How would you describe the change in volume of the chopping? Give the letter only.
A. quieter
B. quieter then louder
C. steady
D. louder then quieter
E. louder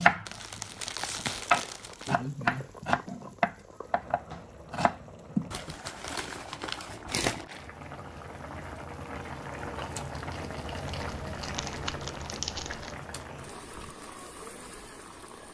D.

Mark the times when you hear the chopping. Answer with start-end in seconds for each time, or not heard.
0.0-5.5.